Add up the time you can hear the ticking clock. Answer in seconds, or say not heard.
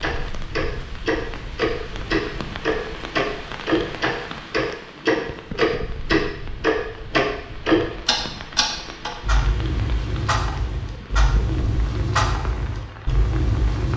14 s.